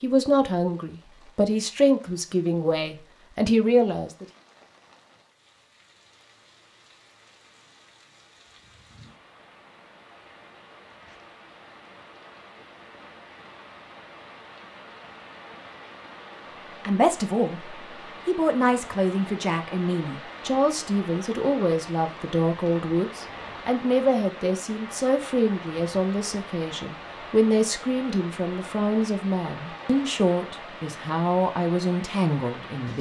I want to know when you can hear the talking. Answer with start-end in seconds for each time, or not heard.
0.0-4.2, 16.9-32.9.